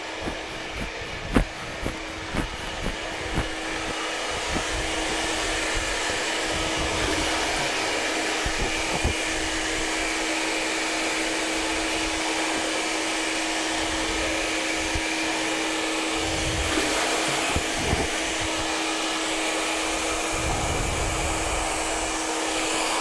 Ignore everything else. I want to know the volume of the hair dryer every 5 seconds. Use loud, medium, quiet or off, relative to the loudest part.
medium, loud, loud, loud, loud.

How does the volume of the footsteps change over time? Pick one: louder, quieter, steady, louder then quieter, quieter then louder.
louder then quieter.